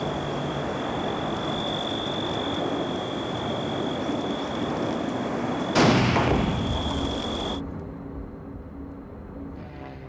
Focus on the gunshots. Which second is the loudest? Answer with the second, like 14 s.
6 s.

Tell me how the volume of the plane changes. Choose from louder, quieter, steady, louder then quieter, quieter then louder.
quieter.